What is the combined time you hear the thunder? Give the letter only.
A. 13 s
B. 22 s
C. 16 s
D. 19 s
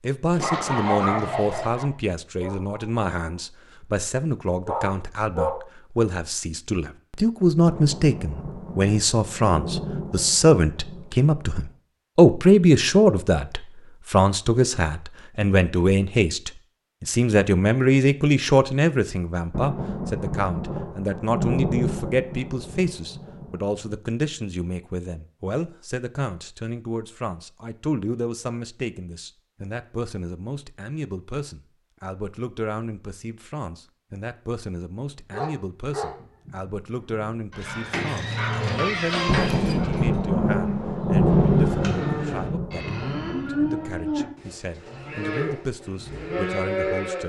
A.